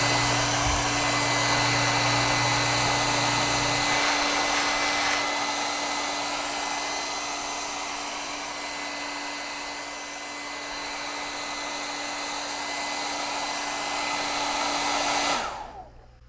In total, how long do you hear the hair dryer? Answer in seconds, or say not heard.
16 s.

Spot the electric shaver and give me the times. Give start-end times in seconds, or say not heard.
0.0-5.3.